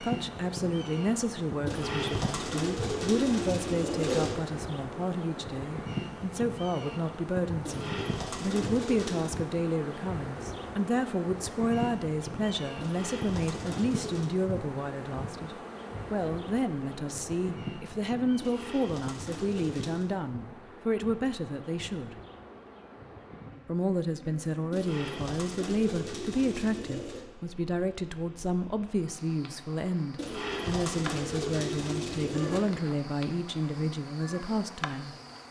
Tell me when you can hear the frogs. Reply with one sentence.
The frogs can't be heard in this clip.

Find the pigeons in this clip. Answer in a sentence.
The pigeons can be heard from 1.6 to 4.3 s, from 7.7 to 9.4 s, from 12.8 to 14.3 s, from 18.4 to 20.1 s, from 24.7 to 27.2 s and from 30.1 to 32.6 s.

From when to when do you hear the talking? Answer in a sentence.
The talking can be heard from 0.0 to 22.1 s and from 23.6 to 35.1 s.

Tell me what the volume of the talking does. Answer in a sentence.
The volume of the talking stays about the same.